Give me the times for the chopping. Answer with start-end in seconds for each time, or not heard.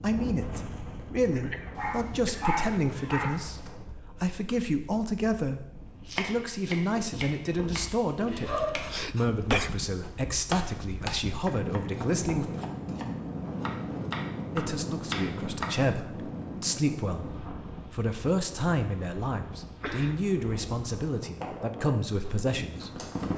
6.0-15.8.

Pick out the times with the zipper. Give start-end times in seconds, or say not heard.
not heard.